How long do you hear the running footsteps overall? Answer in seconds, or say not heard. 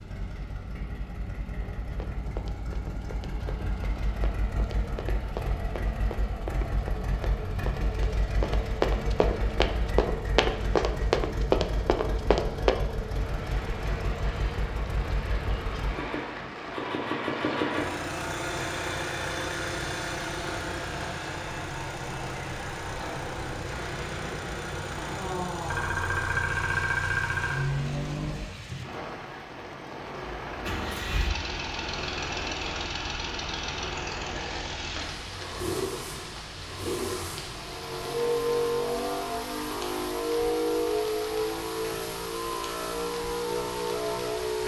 11 s.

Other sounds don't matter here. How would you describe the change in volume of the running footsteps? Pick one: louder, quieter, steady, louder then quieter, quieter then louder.
louder.